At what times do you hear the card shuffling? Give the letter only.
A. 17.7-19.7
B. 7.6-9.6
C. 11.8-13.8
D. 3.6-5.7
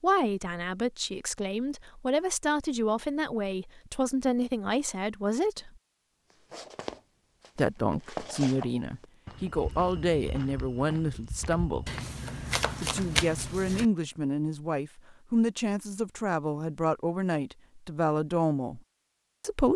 C.